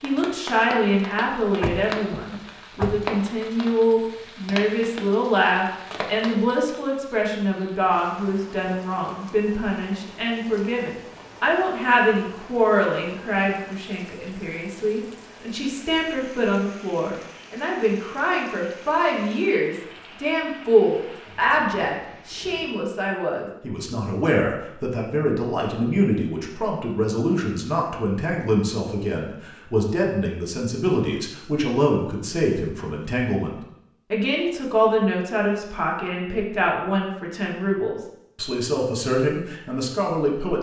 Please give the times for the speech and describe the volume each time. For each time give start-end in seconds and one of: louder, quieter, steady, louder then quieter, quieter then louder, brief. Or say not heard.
0.0-40.5 steady.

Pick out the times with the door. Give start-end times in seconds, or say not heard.
1.6-3.1.